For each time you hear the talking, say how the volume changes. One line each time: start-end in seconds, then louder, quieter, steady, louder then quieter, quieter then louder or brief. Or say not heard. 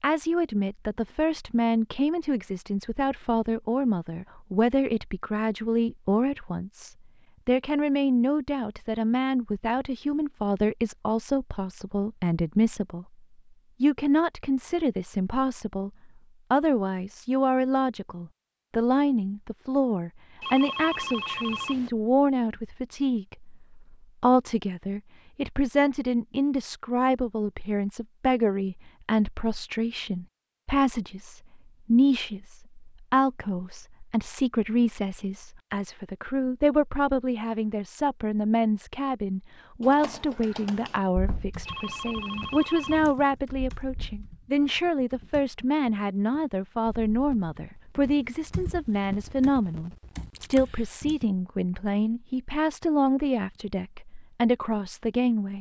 0.0-13.1 steady
13.8-15.9 brief
16.5-55.5 steady.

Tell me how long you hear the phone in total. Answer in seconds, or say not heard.
3 s.